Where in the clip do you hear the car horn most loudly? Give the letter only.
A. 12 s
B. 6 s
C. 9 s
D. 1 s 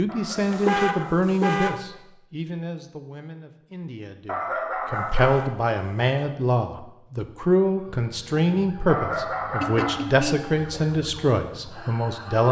D.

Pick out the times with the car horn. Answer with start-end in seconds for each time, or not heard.
0.3-1.8, 4.9-6.3, 9.6-10.6.